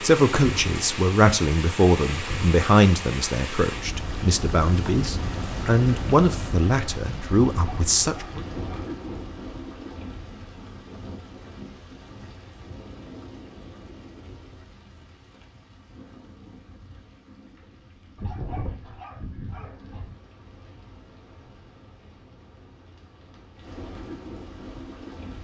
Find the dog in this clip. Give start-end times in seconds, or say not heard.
7.5-9.3, 18.1-20.1.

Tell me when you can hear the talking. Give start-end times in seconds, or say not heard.
0.0-8.4.